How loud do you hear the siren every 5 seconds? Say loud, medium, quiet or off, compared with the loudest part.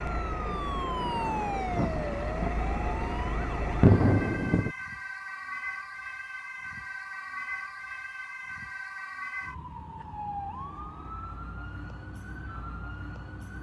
loud, loud, medium.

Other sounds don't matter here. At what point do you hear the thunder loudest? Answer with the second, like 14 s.
4 s.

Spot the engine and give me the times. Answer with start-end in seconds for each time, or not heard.
0.0-3.9.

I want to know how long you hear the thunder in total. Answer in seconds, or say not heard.
3 s.